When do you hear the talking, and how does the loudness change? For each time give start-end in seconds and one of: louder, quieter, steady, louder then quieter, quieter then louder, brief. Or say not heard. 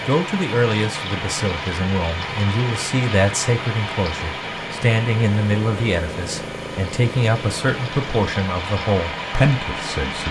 0.0-10.2 steady.